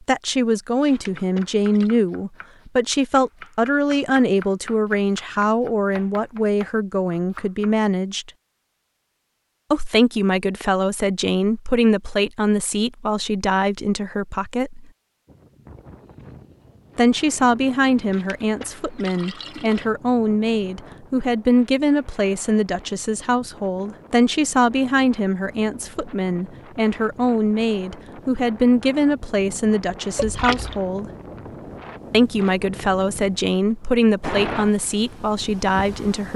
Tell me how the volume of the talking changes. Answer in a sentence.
The loudness of the talking stays about the same.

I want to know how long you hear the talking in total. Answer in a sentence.
The talking can be heard for 32 seconds in total.